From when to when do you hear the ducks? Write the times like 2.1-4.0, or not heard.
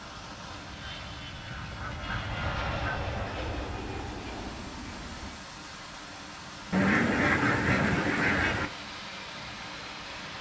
1.5-3.4, 6.7-8.7.